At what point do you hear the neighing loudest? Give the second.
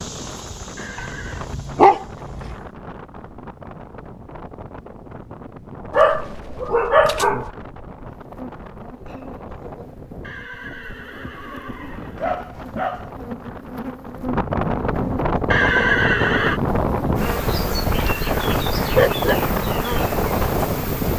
16 s.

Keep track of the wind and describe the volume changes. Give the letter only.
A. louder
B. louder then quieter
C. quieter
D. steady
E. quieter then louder
A.